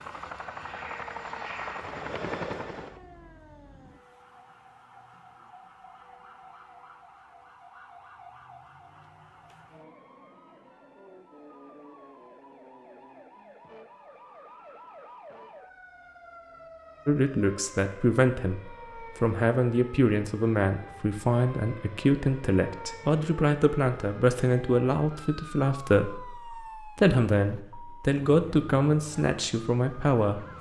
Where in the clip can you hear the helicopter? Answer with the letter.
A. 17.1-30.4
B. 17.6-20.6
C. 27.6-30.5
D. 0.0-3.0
D.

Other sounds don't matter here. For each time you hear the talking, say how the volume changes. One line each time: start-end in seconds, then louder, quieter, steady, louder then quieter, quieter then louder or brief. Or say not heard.
17.1-30.4 steady.